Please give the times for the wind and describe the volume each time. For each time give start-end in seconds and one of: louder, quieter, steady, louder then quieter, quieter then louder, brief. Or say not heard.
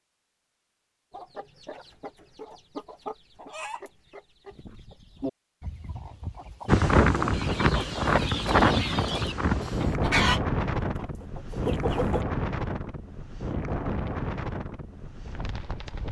6.7-16.0 quieter.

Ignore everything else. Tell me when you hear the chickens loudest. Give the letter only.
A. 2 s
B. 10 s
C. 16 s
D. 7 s
B.